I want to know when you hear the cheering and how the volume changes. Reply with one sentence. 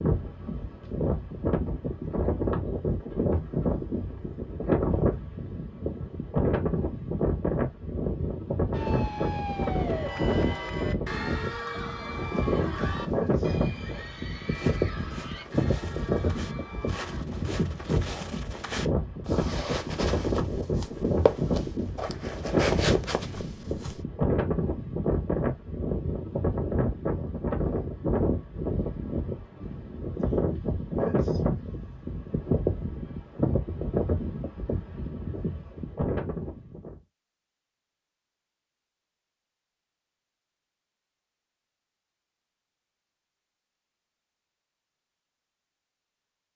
The cheering can be heard from 8.7 to 17.2 s, getting quieter.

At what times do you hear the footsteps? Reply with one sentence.
You can hear the footsteps from 12.9 to 24.1 s.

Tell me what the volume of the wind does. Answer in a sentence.
The volume of the wind stays about the same.